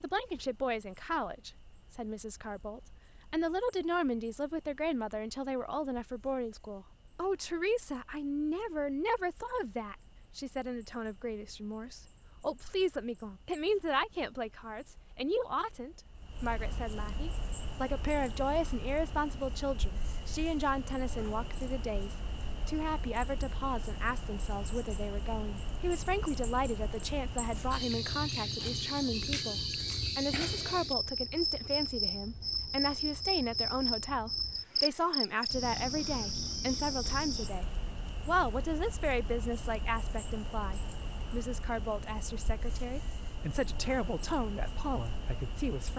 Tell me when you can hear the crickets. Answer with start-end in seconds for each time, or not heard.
0.0-45.9.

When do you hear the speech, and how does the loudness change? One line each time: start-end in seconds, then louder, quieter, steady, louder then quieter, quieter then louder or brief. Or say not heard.
0.0-45.9 steady.